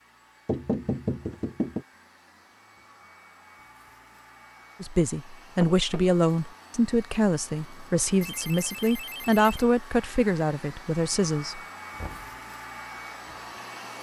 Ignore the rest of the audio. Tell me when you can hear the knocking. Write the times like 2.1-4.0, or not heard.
0.5-1.9, 5.6-6.2, 11.9-12.3.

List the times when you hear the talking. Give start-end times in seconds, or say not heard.
4.8-11.6.